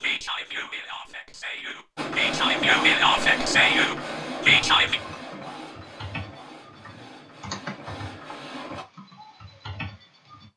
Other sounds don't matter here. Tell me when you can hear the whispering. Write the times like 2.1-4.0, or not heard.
0.0-5.0.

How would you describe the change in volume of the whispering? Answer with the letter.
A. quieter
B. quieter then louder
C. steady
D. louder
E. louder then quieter
D.